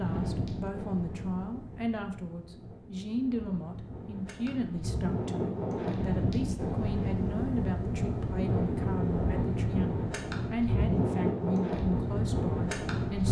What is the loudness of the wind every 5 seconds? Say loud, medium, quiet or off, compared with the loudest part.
medium, loud, loud.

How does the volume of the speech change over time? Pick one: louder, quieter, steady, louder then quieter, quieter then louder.
steady.